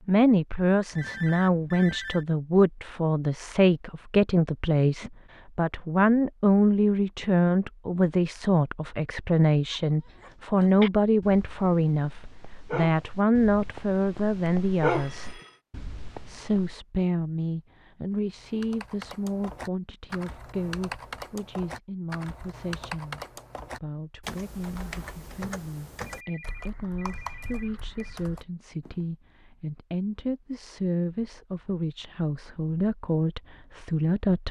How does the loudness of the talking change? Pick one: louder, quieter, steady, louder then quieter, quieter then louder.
quieter then louder.